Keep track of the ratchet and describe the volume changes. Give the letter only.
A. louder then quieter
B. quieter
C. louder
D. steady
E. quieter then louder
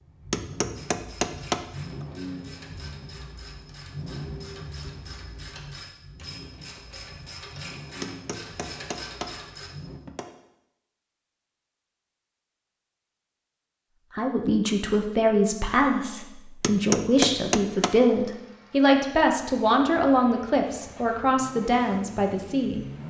C.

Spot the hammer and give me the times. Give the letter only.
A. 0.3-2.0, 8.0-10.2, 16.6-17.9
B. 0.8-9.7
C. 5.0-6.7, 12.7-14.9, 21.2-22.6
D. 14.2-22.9
A.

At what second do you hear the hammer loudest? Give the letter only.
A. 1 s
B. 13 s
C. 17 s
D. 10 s
C.